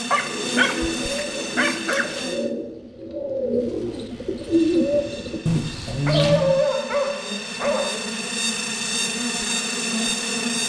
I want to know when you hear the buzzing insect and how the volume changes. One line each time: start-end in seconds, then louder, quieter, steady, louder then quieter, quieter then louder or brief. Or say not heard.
0.0-2.5 brief
4.3-10.6 louder.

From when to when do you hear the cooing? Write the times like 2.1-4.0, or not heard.
0.1-6.6.